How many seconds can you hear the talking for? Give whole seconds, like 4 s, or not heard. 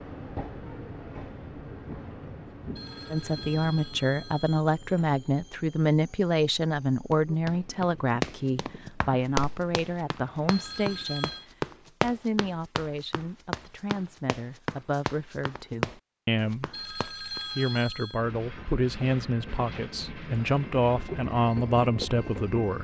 19 s.